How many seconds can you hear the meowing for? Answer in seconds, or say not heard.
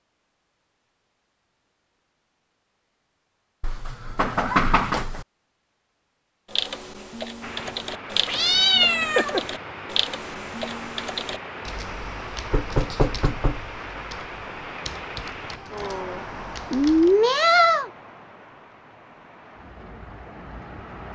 4 s.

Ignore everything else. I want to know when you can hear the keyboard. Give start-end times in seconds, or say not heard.
6.5-17.2.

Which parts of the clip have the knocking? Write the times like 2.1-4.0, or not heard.
4.2-5.0, 12.5-13.7.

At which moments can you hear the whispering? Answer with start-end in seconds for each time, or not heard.
not heard.